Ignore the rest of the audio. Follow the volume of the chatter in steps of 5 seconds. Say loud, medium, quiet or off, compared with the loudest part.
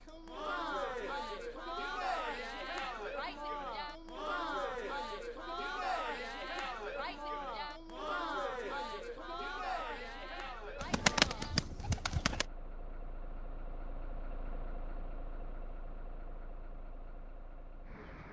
loud, loud, medium, off.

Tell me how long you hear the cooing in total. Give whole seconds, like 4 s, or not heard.
2 s.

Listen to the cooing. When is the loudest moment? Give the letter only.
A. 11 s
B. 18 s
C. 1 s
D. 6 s
A.